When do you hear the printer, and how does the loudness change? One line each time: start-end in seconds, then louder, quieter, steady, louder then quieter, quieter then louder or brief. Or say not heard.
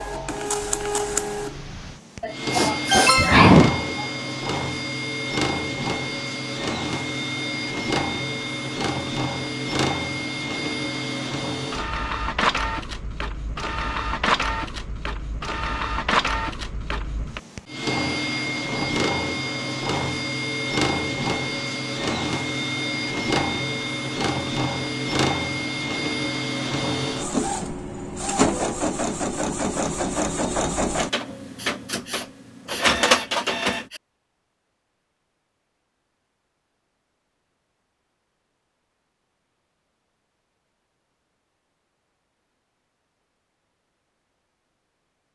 0.0-33.9 steady.